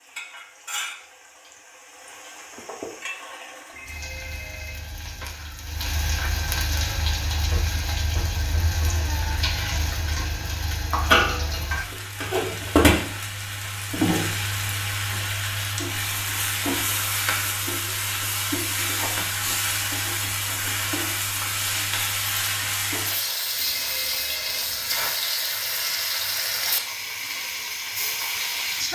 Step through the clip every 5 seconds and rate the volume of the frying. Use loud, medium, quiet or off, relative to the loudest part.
quiet, medium, loud, loud, loud, loud.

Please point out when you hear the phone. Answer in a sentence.
The phone can be heard from 3.7 to 5.3 s and from 23.6 to 25.1 s.